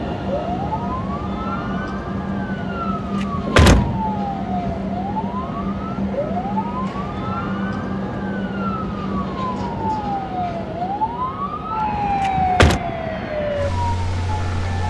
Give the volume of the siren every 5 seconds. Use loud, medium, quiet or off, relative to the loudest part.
medium, medium, loud.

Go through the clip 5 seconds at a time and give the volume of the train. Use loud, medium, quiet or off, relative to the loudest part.
loud, loud, medium.